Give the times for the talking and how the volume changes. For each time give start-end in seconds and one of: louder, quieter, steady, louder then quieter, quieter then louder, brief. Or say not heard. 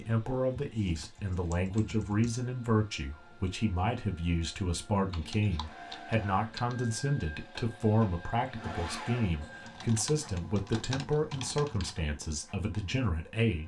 0.0-13.6 steady.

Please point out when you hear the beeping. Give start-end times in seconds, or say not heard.
not heard.